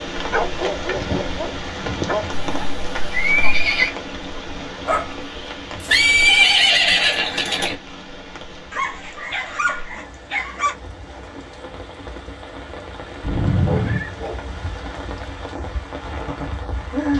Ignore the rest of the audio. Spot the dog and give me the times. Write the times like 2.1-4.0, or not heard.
0.3-2.5, 4.8-6.3, 8.7-10.8, 13.6-15.3.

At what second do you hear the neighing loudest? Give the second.
6 s.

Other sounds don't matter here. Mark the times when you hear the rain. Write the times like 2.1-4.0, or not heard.
0.0-17.1.